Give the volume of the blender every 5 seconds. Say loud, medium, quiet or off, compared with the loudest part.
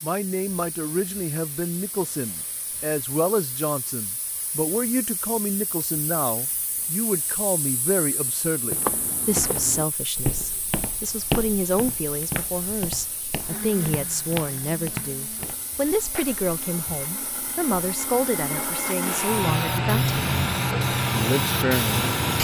off, off, medium, medium, loud.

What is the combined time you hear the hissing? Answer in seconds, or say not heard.
22 s.